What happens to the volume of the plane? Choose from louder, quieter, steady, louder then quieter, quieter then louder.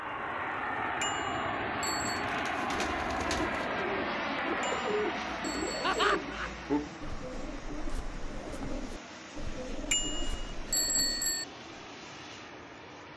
quieter.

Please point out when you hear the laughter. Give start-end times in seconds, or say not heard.
5.8-6.5.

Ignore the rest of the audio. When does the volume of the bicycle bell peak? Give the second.
11 s.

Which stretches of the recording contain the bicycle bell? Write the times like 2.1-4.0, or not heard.
1.0-2.2, 4.6-6.2, 9.9-11.4.